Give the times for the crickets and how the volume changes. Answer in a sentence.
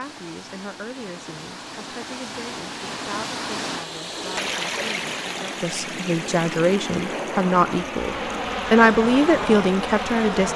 The crickets can't be heard in this clip.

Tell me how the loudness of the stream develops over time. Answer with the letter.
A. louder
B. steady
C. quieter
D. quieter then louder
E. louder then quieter
E.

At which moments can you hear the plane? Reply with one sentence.
The plane can be heard from 4.7 to 10.5 s.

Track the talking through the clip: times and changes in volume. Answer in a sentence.
The talking can be heard from 0.0 to 10.5 s, getting louder.